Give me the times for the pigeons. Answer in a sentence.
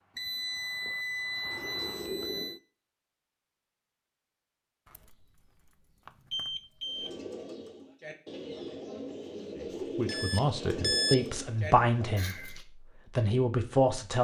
The pigeons can be heard from 6.8 to 12.7 s.